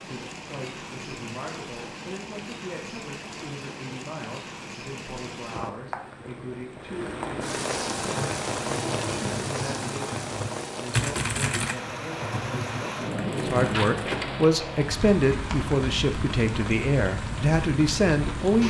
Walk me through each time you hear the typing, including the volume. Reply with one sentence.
You can hear the typing from 8.0 to 14.2 s, getting louder then quieter.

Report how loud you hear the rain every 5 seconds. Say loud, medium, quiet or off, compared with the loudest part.
medium, loud, loud, loud.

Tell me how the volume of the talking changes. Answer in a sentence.
The loudness of the talking goes up.